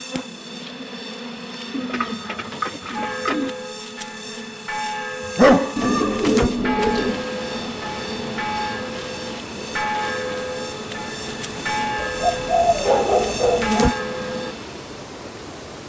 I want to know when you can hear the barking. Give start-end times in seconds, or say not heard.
5.3-5.8, 11.6-13.7.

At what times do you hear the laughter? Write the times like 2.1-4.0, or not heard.
not heard.